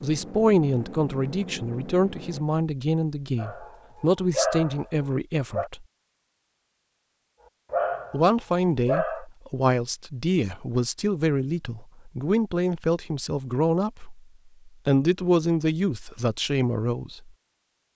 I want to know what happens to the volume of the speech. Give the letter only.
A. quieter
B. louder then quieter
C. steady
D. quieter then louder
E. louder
C.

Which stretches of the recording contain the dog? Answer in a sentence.
You can hear the dog from 3.4 to 5.7 s and from 7.7 to 9.2 s.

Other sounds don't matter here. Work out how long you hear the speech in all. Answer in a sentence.
The speech can be heard for 15 seconds in total.